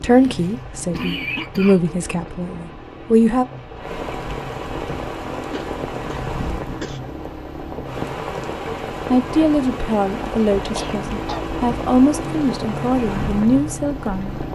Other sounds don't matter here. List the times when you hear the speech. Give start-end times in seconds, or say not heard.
0.0-3.5, 9.1-14.4.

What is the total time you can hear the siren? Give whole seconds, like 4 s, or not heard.
not heard.